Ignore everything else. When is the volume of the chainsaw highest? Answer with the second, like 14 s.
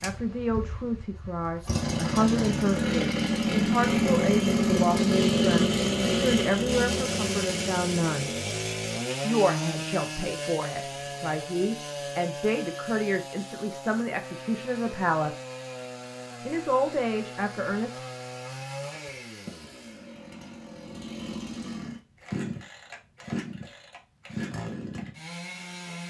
5 s.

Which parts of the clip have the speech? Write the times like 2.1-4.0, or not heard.
0.0-8.3, 9.2-15.3, 16.4-18.0.